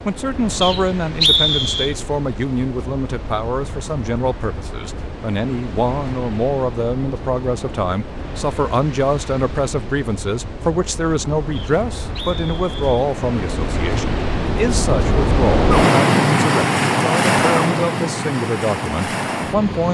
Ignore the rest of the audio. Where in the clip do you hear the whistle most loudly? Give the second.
1 s.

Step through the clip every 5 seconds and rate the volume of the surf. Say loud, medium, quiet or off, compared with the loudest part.
quiet, quiet, medium, loud.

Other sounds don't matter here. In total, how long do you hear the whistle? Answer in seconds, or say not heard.
3 s.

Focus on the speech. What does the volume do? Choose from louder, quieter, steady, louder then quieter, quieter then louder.
steady.